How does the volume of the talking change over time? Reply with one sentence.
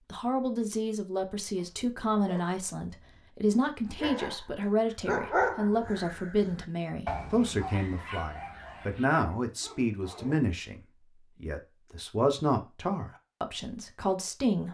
The volume of the talking stays about the same.